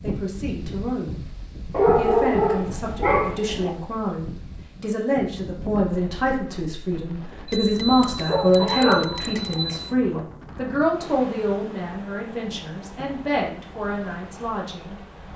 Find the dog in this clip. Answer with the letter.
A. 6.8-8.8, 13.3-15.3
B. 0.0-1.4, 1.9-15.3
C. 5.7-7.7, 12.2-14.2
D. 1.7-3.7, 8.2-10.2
D.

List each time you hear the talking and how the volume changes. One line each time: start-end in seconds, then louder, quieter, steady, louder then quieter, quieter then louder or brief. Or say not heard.
0.0-1.4 brief
1.9-15.3 louder then quieter.